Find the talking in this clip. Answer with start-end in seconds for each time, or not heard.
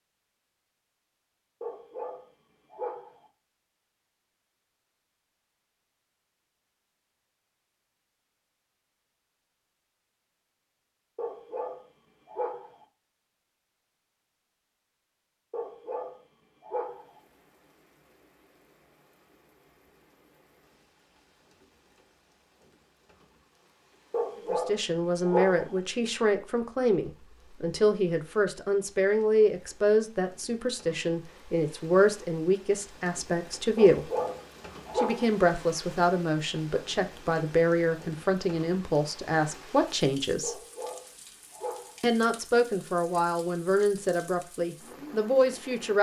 24.5-34.1, 35.0-40.5, 42.0-45.9.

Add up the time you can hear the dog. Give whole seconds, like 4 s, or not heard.
10 s.